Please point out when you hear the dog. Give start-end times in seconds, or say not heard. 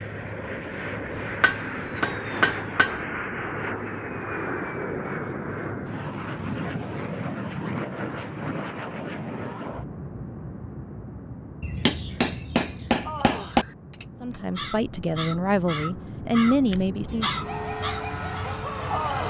16.6-19.1.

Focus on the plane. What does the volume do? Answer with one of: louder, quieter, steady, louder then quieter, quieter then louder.
quieter then louder.